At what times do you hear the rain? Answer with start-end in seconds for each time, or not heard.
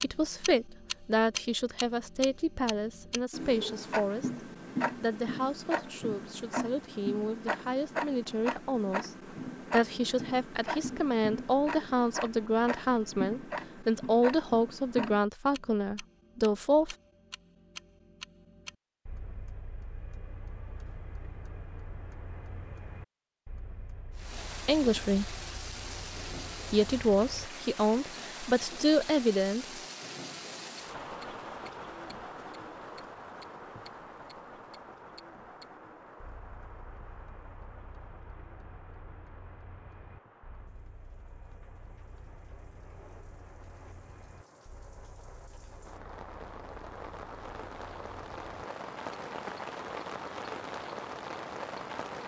24.1-52.2.